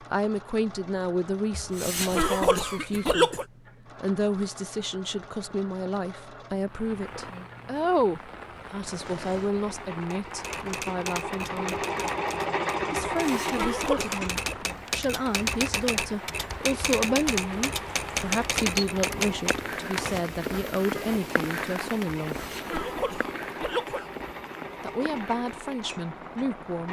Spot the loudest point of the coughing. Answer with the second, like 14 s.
3 s.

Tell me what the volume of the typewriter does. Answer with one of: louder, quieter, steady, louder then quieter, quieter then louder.
louder.